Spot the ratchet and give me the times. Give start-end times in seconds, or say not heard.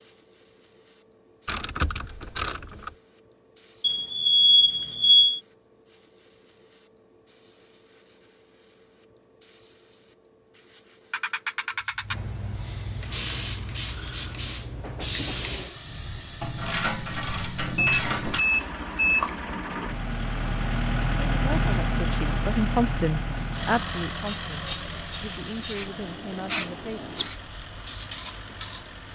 1.4-3.0, 11.1-12.2, 16.4-18.4, 24.2-25.9.